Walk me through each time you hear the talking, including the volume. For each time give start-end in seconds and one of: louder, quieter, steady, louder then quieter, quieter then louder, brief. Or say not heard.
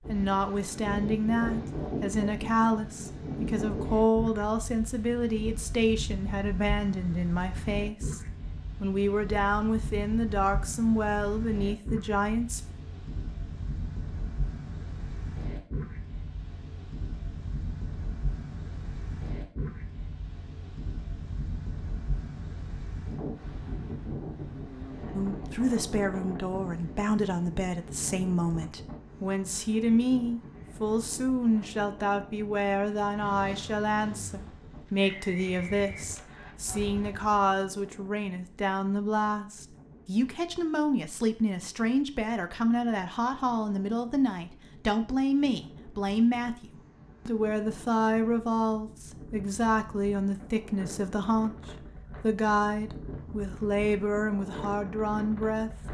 0.1-12.6 steady
25.1-55.7 steady.